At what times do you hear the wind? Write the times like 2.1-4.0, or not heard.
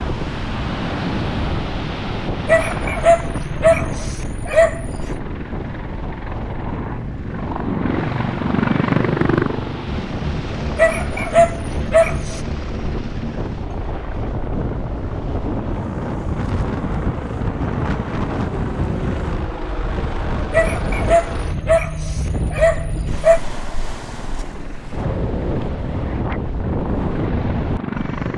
0.0-28.3.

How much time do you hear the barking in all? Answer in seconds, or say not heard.
7 s.